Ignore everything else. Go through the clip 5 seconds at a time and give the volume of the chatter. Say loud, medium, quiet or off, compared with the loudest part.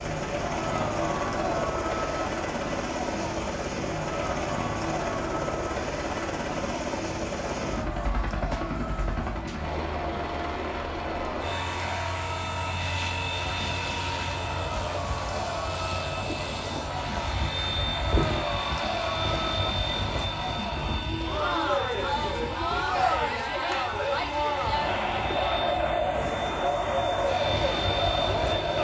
medium, medium, medium, medium, loud, loud.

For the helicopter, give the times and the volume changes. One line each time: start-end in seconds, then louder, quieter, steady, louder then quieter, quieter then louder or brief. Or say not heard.
0.0-28.8 steady.